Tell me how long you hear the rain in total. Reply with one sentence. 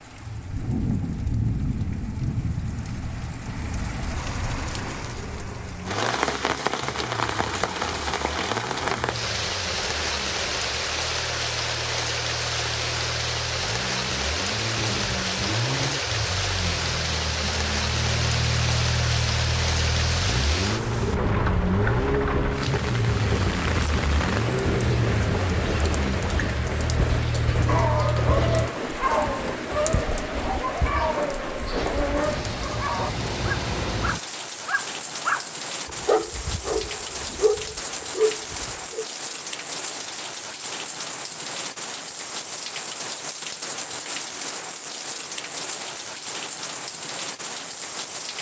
The rain can be heard for 48 seconds in total.